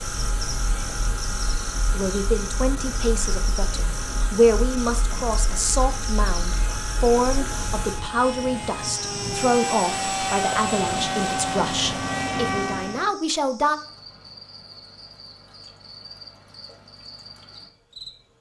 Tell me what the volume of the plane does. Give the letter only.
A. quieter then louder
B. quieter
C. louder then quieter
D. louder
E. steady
D.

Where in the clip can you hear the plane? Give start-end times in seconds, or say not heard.
0.0-13.1.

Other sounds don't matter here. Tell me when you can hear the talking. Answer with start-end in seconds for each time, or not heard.
1.9-13.8.